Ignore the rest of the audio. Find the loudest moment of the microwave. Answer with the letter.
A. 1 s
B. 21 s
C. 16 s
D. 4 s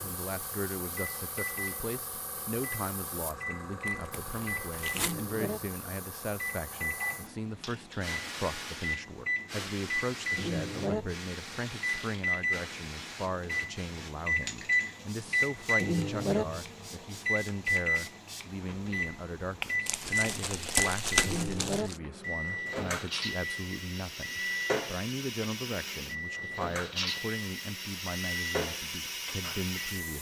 C.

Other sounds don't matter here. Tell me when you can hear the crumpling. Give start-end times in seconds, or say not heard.
3.9-5.3, 19.9-21.9.